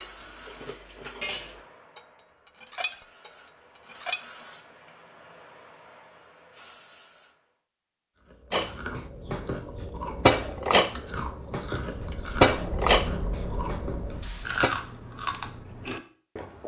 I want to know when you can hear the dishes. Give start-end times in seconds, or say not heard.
0.0-4.2, 8.5-14.7.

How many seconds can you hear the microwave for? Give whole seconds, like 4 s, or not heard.
not heard.